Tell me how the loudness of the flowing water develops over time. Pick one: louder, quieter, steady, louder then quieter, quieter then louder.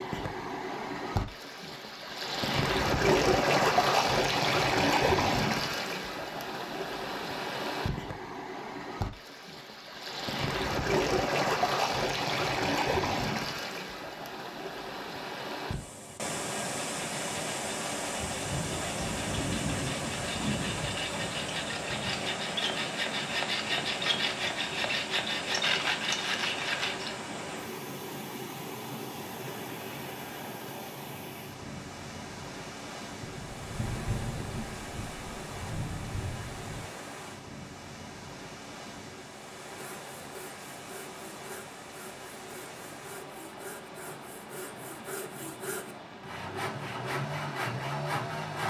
quieter.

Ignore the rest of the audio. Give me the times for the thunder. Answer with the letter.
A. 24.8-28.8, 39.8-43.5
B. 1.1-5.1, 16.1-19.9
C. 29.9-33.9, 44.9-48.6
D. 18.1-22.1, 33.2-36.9
D.